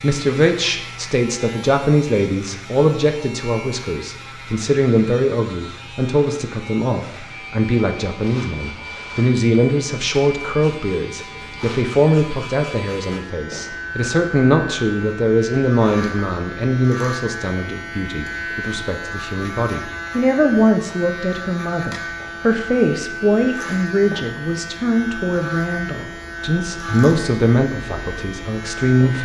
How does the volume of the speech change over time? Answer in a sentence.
The volume of the speech stays about the same.